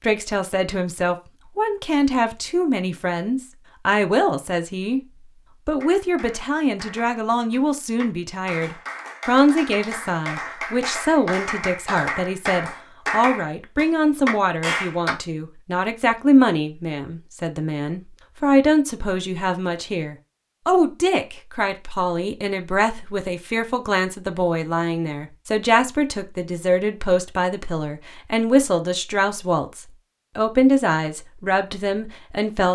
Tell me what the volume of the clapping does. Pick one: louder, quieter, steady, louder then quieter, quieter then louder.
louder.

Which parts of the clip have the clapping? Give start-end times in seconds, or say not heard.
5.8-15.2.